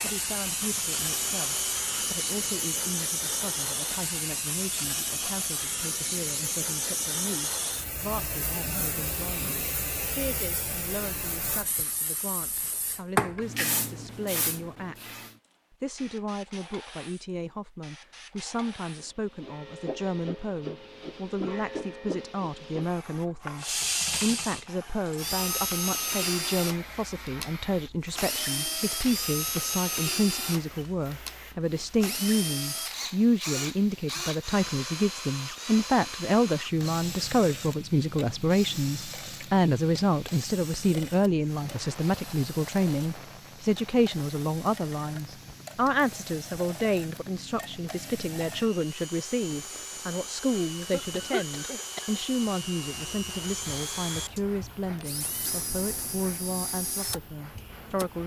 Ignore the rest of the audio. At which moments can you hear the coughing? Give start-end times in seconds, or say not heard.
50.5-52.1.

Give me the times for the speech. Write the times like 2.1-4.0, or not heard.
0.0-58.2.